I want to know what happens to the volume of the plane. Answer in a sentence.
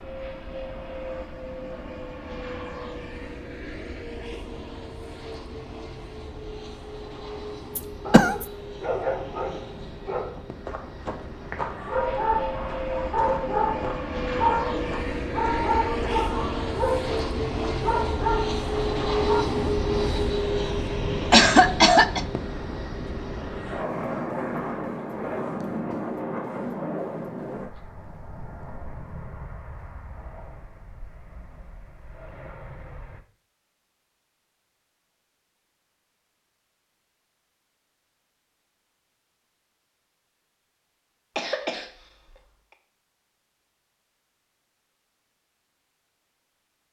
The loudness of the plane goes up, then down.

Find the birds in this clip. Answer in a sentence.
You can't hear the birds here.